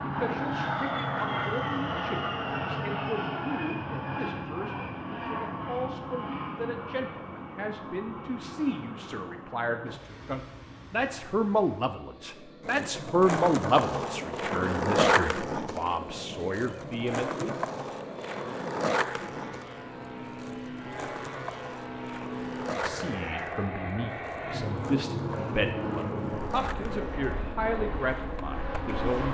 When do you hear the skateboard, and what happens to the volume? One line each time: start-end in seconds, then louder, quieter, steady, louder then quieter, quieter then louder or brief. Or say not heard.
12.6-29.2 quieter.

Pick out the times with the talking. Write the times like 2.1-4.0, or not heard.
0.0-17.6, 22.8-29.2.